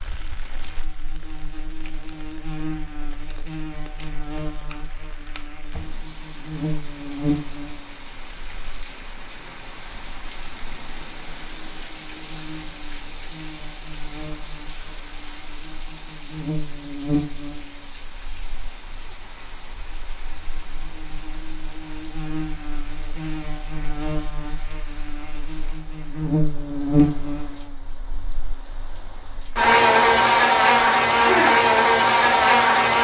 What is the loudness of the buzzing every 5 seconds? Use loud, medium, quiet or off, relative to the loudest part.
quiet, quiet, quiet, quiet, quiet, medium, loud.